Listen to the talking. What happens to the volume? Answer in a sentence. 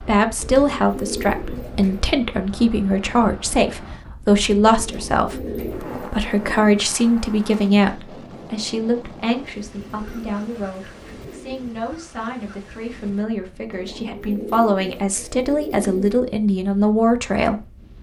The volume of the talking goes down, then up.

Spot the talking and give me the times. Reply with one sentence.
The talking can be heard from 0.0 to 17.6 s.